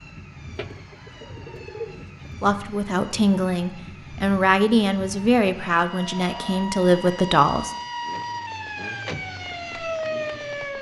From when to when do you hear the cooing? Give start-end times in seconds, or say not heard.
0.6-2.4.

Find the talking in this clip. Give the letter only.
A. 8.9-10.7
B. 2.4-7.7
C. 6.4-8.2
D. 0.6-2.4
B.